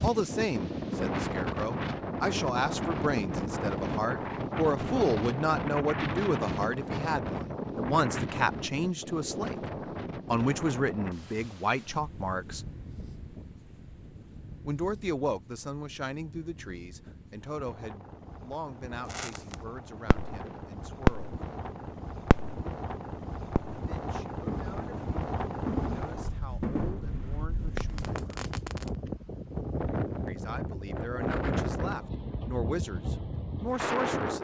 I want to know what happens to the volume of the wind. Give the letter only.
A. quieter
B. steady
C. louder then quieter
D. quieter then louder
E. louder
D.